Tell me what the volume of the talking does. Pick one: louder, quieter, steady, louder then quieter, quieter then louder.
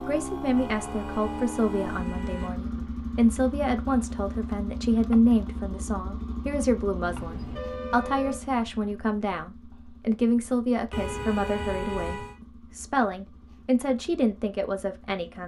steady.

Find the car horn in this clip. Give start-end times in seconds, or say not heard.
0.6-2.6, 7.0-8.4, 10.9-12.3.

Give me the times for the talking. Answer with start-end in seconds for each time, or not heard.
0.1-15.4.